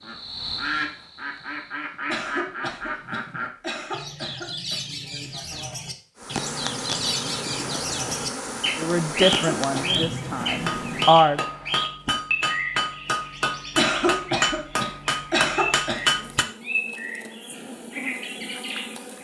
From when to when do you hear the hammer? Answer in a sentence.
The hammer can be heard from 10.5 to 16.4 s.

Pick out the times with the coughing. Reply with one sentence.
You can hear the coughing from 2.0 to 4.8 s, from 9.2 to 10.1 s and from 13.8 to 16.1 s.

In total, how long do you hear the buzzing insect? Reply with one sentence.
The buzzing insect can be heard for 10 seconds in total.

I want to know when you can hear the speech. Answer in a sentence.
The speech can be heard from 8.8 to 11.4 s.